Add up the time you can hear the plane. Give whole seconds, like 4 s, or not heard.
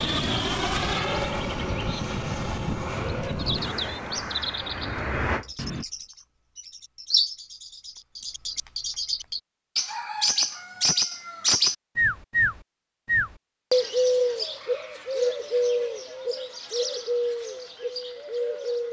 6 s.